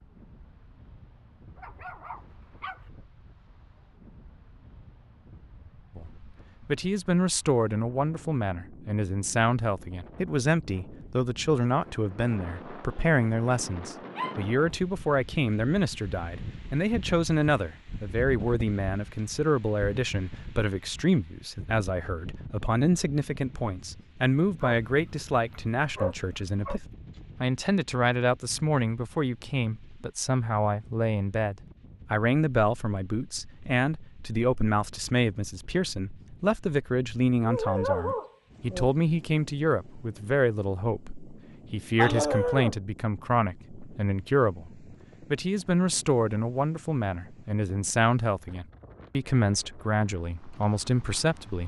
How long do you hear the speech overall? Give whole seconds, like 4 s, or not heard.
46 s.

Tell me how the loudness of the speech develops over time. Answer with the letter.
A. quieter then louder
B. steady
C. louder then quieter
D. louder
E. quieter
B.